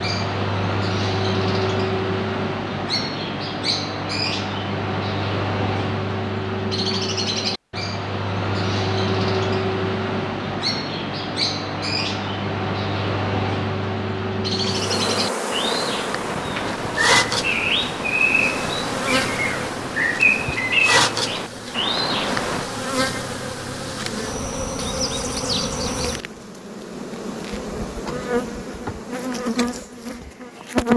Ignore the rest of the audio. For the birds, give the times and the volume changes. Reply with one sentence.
The birds can be heard from 0.0 to 22.6 s, at a steady volume.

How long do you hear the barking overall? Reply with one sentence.
You can't hear the barking here.